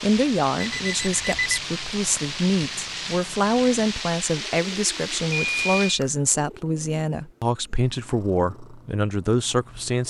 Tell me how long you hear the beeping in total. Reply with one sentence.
The beeping can be heard for 2 seconds in total.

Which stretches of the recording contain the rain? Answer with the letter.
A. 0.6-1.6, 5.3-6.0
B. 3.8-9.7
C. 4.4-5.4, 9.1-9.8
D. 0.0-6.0
D.